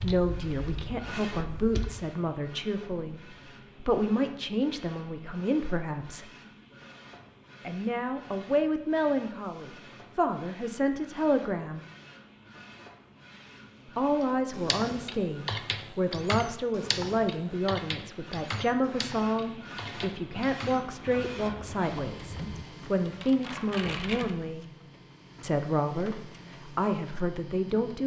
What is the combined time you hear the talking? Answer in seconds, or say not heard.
24 s.